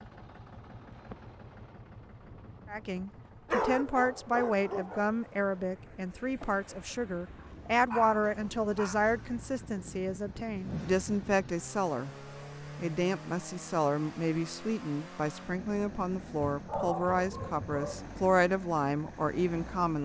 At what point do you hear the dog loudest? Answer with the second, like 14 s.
4 s.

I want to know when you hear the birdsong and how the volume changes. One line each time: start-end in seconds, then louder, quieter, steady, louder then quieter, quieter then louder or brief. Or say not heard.
not heard.